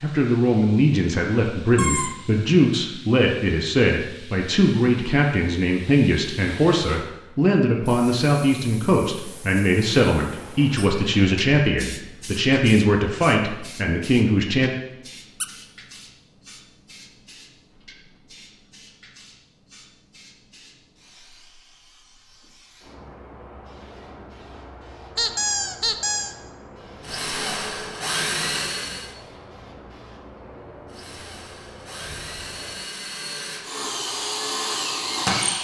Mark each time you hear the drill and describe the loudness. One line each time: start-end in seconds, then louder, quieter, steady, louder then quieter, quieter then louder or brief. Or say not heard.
27.0-29.1 brief
30.9-35.5 louder.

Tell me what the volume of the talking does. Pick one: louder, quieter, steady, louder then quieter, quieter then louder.
steady.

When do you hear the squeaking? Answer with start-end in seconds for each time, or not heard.
1.8-2.4, 25.1-26.4.